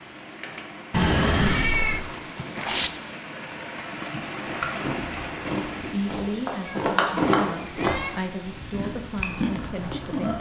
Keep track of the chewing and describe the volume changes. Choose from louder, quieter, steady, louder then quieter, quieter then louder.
louder then quieter.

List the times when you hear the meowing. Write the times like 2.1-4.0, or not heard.
0.9-2.9, 6.6-8.1.